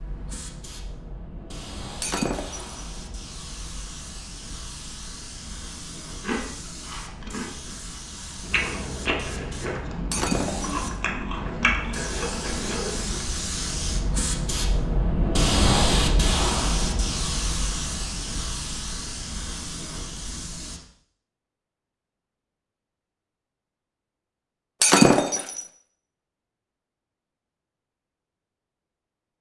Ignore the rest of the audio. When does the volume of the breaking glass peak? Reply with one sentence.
The volume of the breaking glass peaks at 25 seconds.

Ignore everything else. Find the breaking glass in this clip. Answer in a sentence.
You can hear the breaking glass from 2.0 to 2.8 s, from 10.1 to 10.8 s and from 24.8 to 25.6 s.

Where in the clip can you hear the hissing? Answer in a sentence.
The hissing can be heard from 0.0 to 20.8 s.